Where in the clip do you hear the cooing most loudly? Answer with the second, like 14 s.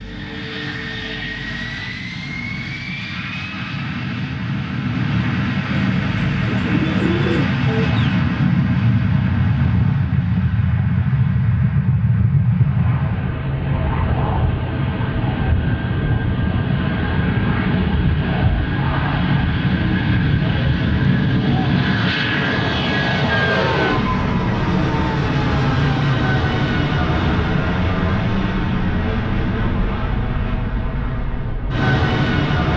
7 s.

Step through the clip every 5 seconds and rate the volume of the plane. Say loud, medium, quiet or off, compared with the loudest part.
medium, loud, loud, loud, loud, loud, loud.